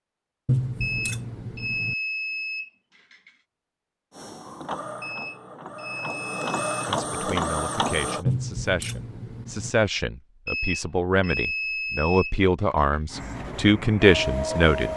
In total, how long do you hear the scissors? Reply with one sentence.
You can hear the scissors for 3 seconds altogether.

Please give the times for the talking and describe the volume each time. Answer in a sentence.
You can hear the talking from 6.8 to 14.9 s, getting louder.